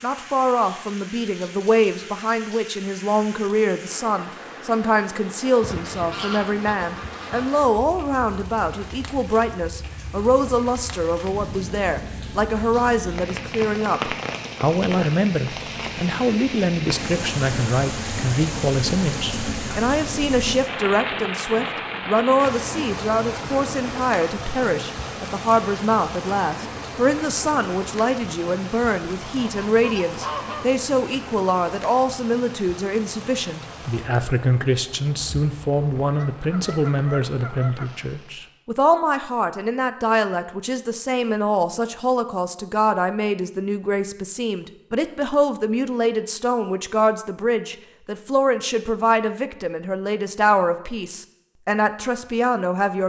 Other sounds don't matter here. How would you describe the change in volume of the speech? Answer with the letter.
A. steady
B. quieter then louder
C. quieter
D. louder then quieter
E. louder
A.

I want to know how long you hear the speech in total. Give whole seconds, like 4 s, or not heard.
53 s.